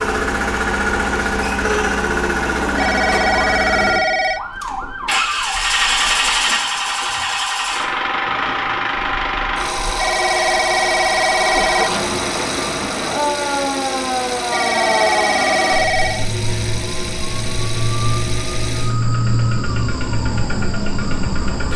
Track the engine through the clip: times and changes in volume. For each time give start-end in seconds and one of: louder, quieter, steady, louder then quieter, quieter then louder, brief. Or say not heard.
0.0-21.7 quieter.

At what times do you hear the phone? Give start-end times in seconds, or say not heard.
2.8-4.4, 9.9-12.0, 14.5-16.3.